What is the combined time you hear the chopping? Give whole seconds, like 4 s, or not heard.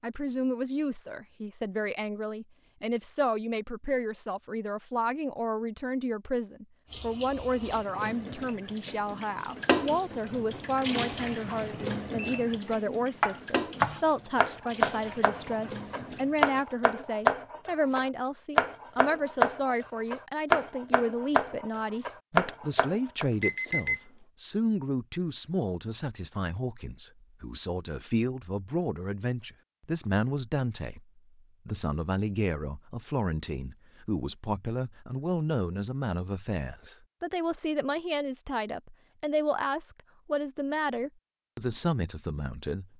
11 s.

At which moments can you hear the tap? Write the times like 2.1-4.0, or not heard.
6.8-16.6.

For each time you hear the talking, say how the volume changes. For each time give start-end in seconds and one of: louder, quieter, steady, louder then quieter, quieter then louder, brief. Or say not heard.
0.0-42.9 steady.